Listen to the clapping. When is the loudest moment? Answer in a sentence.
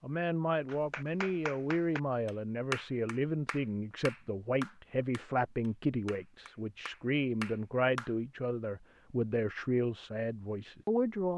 The volume of the clapping peaks at 3 seconds.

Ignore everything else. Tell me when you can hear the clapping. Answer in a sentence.
The clapping can be heard from 0.7 to 8.1 s.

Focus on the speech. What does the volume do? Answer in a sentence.
The loudness of the speech stays about the same.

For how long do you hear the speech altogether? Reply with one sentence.
The speech can be heard for 11 seconds in total.